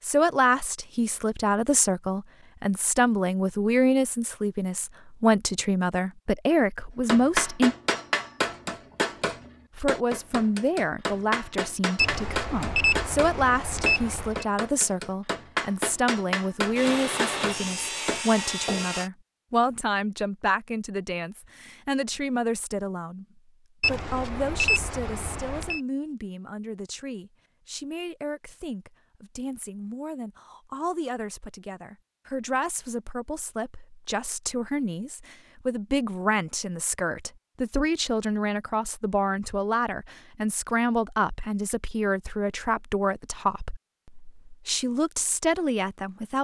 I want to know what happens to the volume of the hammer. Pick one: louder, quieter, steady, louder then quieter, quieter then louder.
steady.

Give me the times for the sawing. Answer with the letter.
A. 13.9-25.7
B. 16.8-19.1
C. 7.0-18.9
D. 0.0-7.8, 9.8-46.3
B.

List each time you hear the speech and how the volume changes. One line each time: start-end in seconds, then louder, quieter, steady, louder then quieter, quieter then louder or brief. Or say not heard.
0.0-7.8 steady
9.8-46.3 quieter then louder.